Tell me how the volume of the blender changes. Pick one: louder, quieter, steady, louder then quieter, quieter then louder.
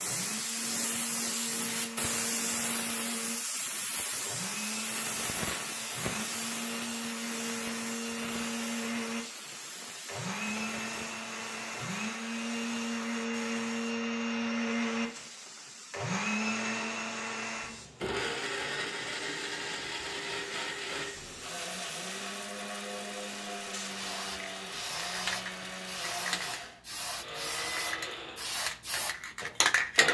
louder then quieter.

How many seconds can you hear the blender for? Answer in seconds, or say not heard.
30 s.